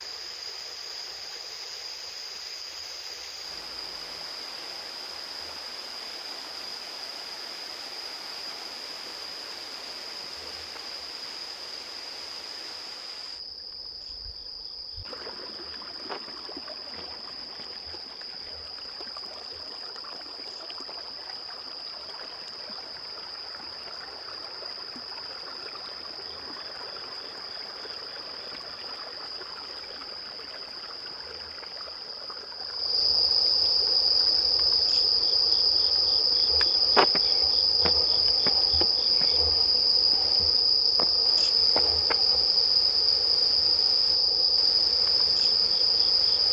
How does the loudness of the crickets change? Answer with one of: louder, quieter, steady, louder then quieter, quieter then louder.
louder.